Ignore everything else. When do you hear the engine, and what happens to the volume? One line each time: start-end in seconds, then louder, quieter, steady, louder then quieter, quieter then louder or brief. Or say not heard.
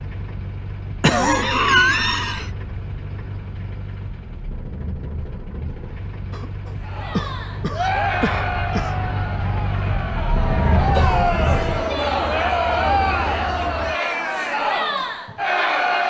0.0-14.0 louder.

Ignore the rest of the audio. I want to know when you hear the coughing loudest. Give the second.
2 s.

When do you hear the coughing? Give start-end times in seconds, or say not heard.
1.0-2.5, 6.3-8.9, 10.8-11.2.